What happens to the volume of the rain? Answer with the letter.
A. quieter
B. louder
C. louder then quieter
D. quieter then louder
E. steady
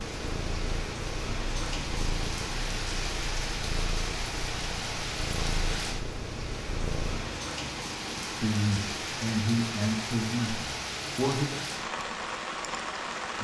E.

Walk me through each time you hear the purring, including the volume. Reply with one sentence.
You can hear the purring from 0.0 to 7.3 s, at a steady volume.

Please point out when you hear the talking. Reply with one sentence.
The talking can be heard from 8.2 to 11.7 s.